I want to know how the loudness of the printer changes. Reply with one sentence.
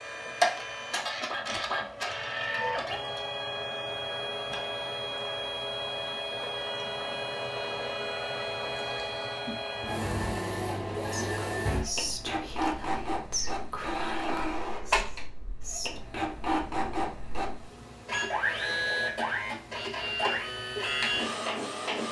The loudness of the printer stays about the same.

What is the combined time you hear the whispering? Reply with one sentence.
The whispering can be heard for 5 seconds in total.